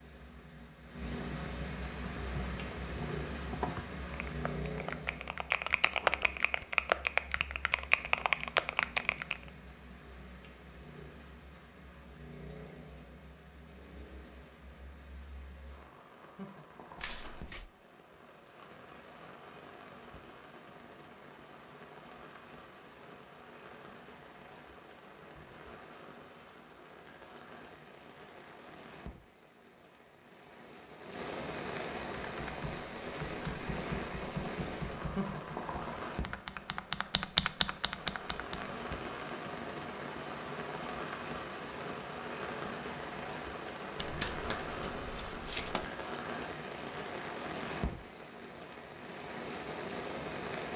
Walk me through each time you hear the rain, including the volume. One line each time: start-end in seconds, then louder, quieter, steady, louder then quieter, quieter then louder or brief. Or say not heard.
0.0-50.7 quieter then louder.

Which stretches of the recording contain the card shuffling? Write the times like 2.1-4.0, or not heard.
16.9-17.7, 44.0-45.9.